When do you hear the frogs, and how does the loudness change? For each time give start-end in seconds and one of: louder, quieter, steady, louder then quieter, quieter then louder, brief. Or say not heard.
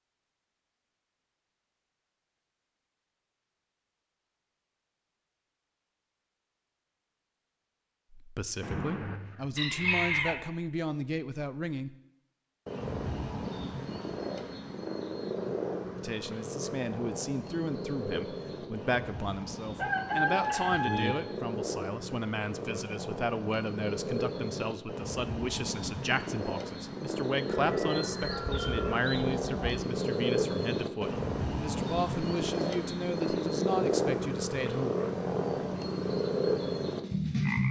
12.7-37.6 louder.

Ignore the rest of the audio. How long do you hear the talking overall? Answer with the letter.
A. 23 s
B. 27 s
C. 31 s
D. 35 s
A.